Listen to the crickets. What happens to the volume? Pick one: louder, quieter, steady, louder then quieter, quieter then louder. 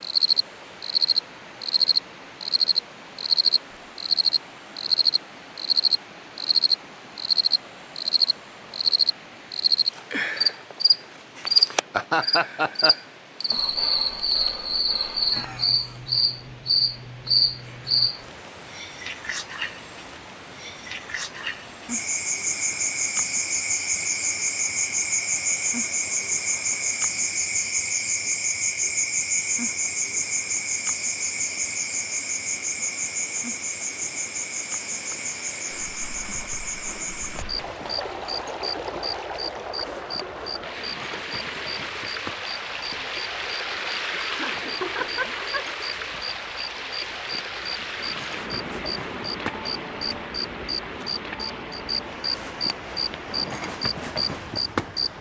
quieter.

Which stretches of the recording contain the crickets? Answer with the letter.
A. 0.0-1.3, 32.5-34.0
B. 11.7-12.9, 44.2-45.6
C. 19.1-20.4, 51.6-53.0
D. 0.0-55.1
D.